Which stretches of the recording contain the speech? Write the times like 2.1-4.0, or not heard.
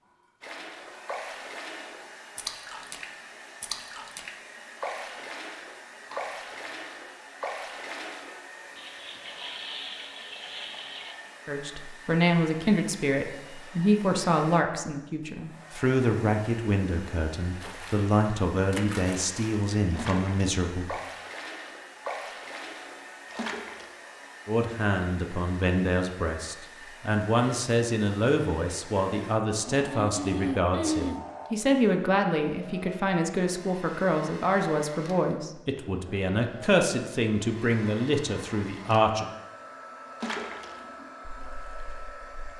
11.4-21.0, 24.4-39.2.